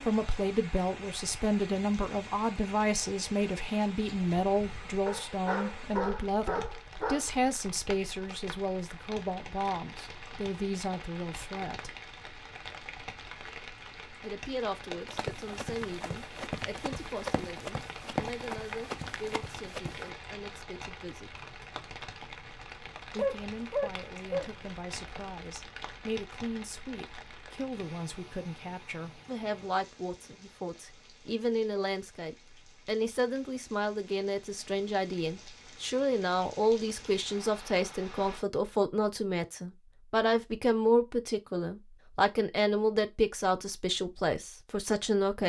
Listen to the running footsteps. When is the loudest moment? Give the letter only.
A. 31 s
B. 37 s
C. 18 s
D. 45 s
C.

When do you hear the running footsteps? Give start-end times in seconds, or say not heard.
15.1-20.1.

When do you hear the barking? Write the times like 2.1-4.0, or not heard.
5.0-7.2, 23.1-24.5.